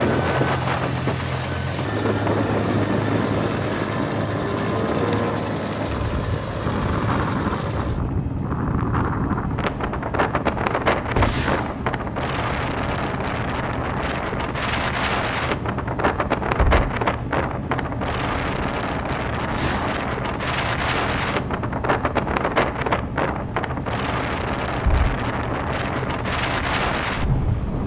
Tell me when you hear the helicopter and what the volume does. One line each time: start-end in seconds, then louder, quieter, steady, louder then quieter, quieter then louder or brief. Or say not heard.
0.0-27.8 steady.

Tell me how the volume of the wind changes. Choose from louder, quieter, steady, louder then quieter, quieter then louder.
steady.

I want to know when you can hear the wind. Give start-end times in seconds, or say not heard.
0.0-27.8.